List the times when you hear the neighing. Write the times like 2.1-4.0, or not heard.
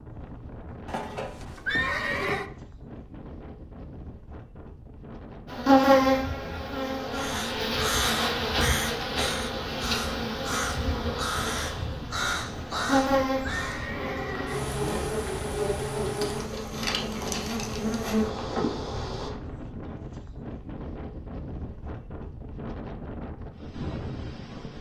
0.8-2.5, 12.7-14.6.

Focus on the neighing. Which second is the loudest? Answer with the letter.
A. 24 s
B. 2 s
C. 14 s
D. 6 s
B.